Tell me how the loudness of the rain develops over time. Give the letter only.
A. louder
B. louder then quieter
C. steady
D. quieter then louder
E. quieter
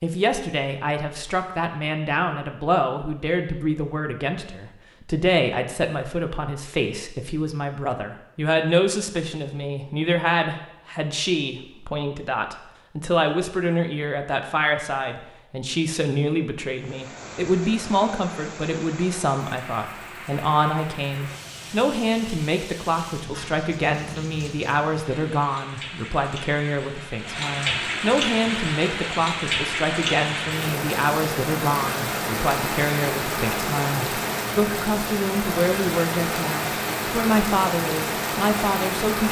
A.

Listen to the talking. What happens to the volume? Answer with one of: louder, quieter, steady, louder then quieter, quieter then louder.
steady.